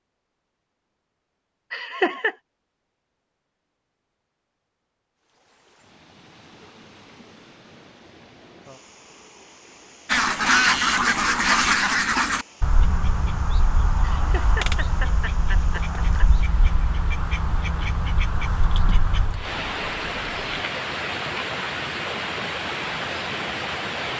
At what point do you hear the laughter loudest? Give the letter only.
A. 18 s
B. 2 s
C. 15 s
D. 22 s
B.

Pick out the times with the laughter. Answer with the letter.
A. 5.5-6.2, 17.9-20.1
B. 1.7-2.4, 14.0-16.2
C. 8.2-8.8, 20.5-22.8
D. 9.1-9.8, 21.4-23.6
B.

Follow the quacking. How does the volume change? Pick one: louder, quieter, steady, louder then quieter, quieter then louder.
quieter.